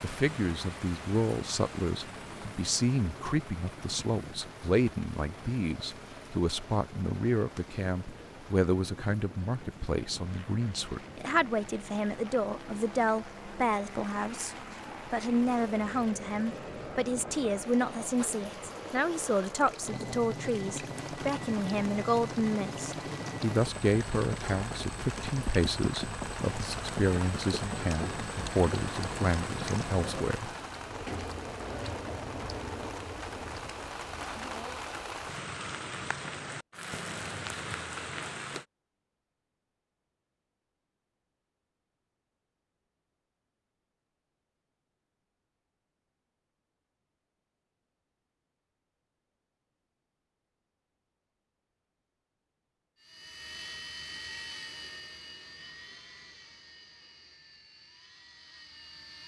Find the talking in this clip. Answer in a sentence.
The talking can be heard from 0.0 to 30.5 s.